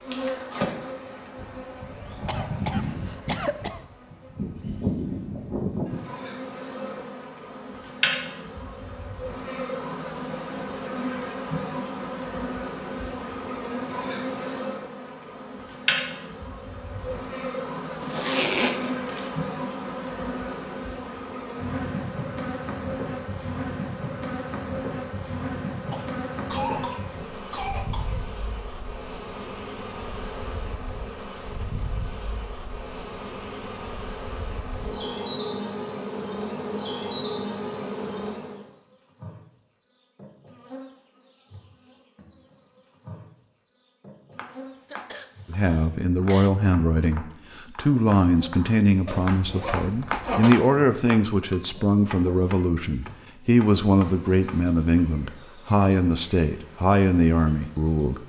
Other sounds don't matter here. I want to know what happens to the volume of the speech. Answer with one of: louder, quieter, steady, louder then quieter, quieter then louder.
steady.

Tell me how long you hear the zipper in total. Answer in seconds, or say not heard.
3 s.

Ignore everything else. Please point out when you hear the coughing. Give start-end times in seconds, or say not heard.
2.2-3.8, 25.9-28.2, 44.9-46.5.